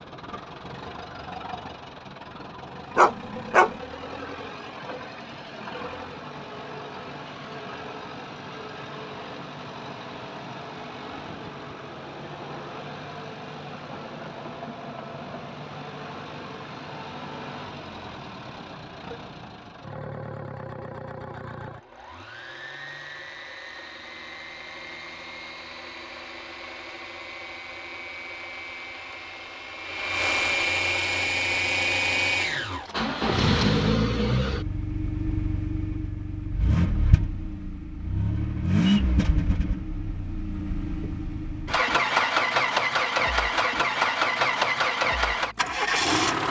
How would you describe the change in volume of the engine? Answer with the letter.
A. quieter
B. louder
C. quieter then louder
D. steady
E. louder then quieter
B.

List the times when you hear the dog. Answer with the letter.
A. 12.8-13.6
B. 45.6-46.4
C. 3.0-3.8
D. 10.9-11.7
C.